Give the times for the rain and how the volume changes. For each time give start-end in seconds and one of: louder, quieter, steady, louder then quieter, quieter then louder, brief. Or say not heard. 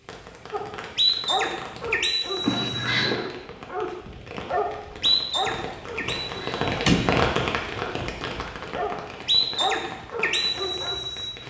0.0-11.4 louder then quieter.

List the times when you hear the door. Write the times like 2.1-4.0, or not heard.
2.5-3.2, 6.0-7.2.